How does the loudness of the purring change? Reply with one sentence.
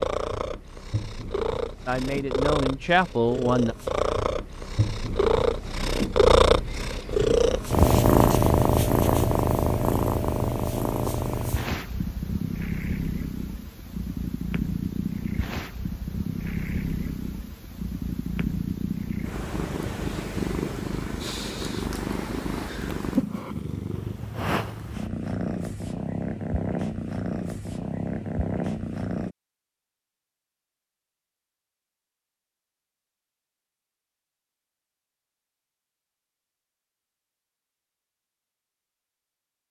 The loudness of the purring goes up, then down.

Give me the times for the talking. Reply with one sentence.
The talking can be heard from 1.9 to 3.8 s.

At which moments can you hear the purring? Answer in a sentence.
You can hear the purring from 0.0 to 29.4 s.